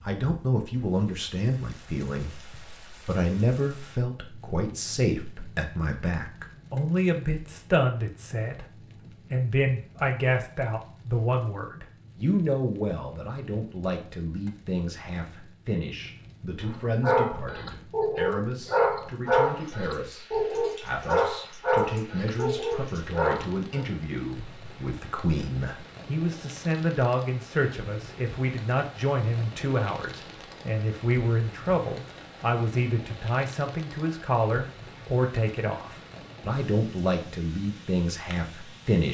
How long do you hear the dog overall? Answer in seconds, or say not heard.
7 s.